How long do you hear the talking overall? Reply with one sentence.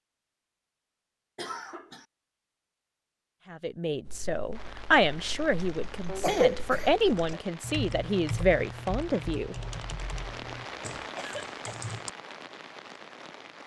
You can hear the talking for 6 seconds altogether.